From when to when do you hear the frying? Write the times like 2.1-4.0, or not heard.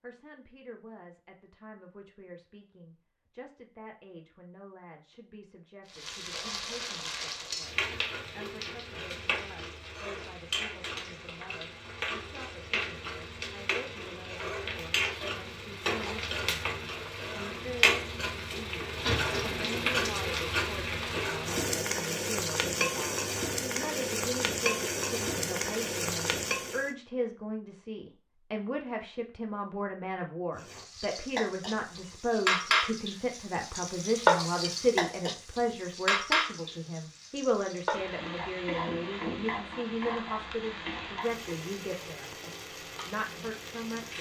5.9-26.9, 30.6-44.1.